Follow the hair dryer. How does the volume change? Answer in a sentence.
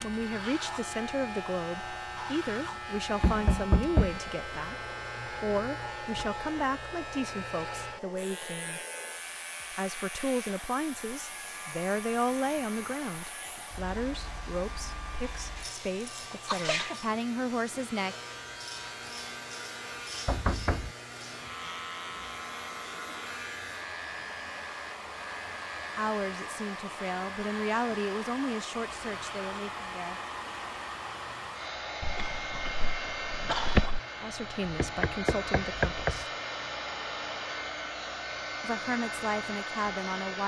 The loudness of the hair dryer goes up.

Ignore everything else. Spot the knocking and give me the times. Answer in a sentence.
You can hear the knocking from 3.2 to 4.2 s, from 20.2 to 20.9 s and from 34.6 to 36.2 s.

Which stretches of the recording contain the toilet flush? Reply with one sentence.
You can't hear the toilet flush here.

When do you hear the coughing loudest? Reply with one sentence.
The volume of the coughing peaks at 34 seconds.